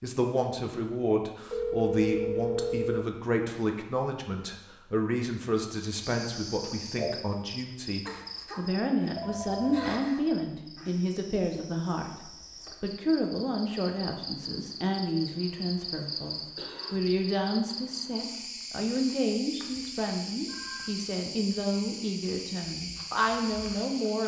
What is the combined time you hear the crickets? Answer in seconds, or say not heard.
18 s.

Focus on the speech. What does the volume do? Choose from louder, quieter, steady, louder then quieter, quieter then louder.
steady.